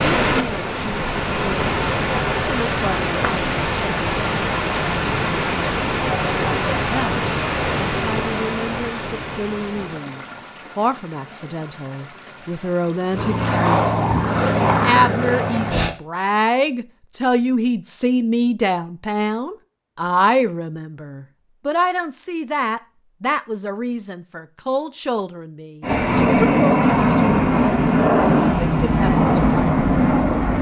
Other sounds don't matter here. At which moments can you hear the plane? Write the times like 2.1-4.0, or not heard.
13.1-15.9, 25.8-30.5.